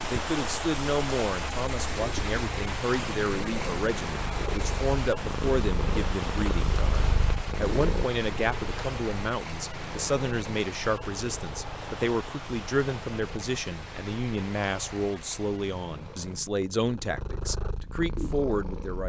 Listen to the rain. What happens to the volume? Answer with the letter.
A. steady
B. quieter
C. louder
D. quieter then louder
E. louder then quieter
B.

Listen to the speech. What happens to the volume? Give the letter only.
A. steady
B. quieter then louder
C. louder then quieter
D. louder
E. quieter
A.